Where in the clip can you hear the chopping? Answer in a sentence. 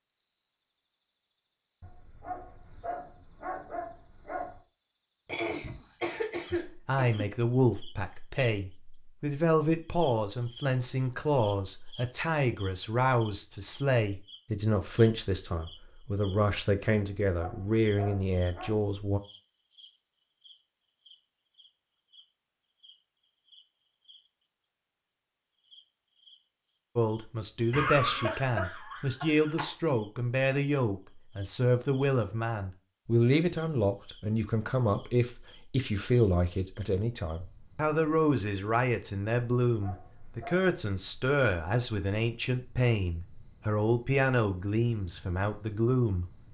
You can't hear the chopping here.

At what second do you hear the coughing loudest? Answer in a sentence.
The loudest moment of the coughing is at 28 seconds.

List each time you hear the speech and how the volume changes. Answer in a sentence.
You can hear the speech from 6.5 to 19.2 s, at a steady volume; and from 26.9 to 46.2 s, at a steady volume.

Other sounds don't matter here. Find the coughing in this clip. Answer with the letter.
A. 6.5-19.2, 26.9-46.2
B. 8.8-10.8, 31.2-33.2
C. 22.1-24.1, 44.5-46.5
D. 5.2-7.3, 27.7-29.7
D.